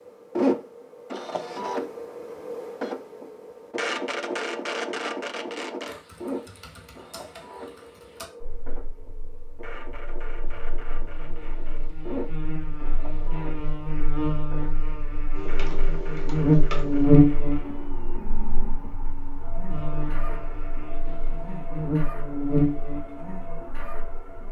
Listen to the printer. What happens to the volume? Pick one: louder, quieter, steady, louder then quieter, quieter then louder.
quieter.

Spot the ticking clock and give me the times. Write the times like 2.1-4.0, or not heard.
not heard.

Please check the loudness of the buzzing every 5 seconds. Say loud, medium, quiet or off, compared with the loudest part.
off, quiet, quiet, loud, medium.